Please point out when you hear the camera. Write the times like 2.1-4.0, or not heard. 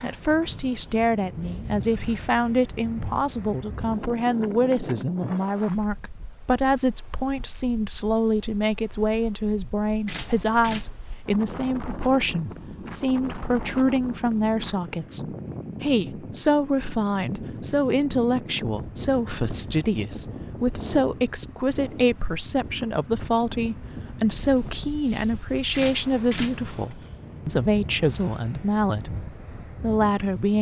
10.1-10.9, 25.7-26.9.